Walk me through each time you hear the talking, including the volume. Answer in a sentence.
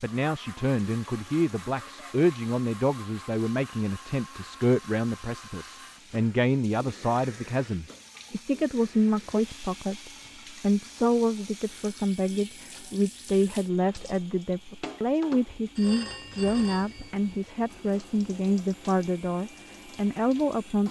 The talking can be heard from 0.0 to 20.8 s, at a steady volume.